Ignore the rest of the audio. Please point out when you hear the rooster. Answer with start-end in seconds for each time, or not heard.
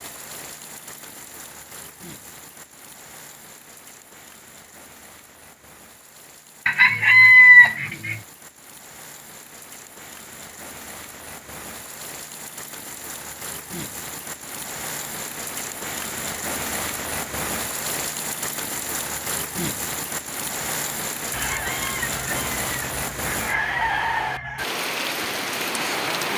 6.7-8.2, 21.3-24.6.